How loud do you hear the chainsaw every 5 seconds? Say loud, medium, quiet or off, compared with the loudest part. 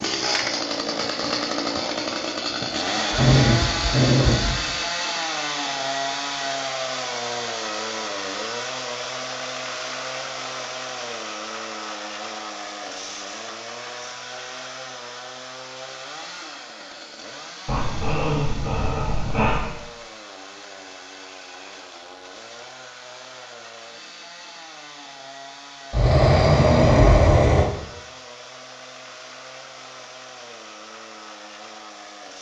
loud, loud, medium, quiet, quiet, quiet, quiet.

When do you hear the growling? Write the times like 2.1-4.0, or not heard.
3.1-4.7, 17.6-19.7, 25.9-27.6.